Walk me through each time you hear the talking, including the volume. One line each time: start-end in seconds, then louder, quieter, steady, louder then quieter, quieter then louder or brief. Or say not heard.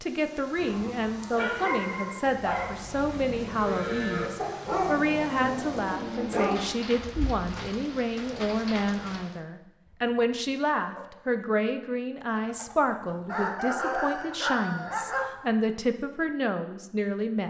0.0-17.4 steady.